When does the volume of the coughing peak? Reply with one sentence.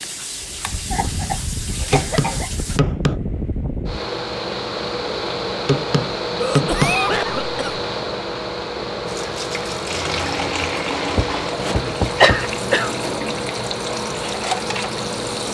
The loudest moment of the coughing is at 12 seconds.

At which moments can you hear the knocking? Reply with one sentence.
The knocking can be heard from 1.9 to 3.2 s, from 5.7 to 7.0 s and from 11.2 to 12.5 s.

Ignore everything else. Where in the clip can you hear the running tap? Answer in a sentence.
The running tap can be heard from 0.0 to 2.8 s and from 9.1 to 15.4 s.